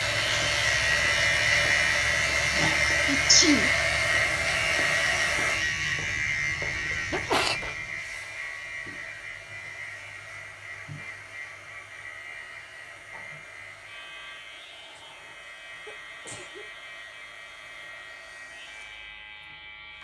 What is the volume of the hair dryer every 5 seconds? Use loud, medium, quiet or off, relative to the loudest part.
loud, medium, quiet, quiet.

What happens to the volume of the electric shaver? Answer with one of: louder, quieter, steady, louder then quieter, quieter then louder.
quieter.